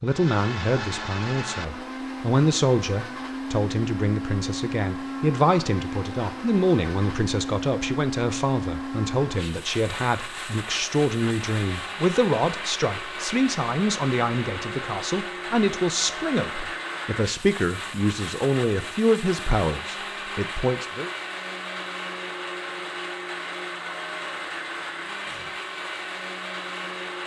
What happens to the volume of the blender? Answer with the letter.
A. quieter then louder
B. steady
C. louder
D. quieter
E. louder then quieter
B.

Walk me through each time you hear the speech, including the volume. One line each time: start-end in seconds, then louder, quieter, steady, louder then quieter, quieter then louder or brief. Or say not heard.
0.0-21.1 steady.